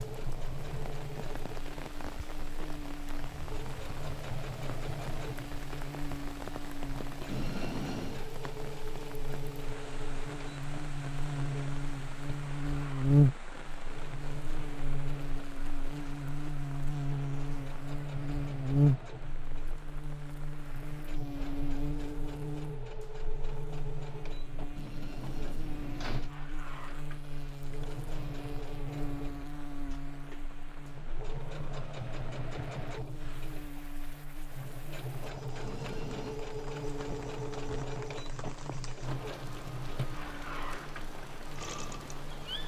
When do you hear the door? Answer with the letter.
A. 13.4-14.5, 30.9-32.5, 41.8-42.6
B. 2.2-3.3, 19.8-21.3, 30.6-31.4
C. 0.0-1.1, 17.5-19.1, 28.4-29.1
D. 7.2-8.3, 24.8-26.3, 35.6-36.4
D.